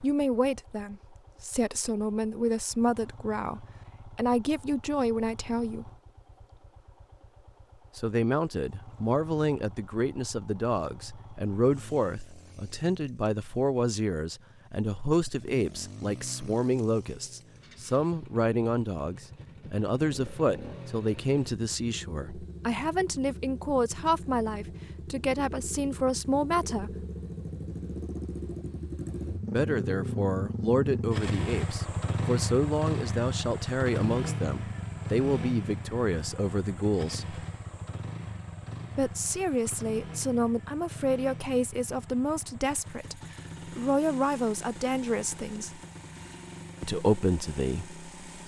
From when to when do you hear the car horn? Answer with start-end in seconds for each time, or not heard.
not heard.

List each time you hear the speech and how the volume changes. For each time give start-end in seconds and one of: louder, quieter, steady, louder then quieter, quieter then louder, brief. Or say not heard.
0.0-5.9 steady
8.0-27.1 steady
29.4-37.5 steady
39.0-45.8 steady
46.8-48.4 brief.